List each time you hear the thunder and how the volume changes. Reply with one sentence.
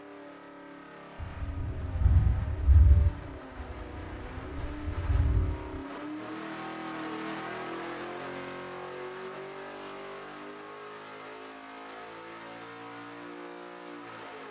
The thunder can be heard from 1.2 to 5.8 s, getting quieter then louder.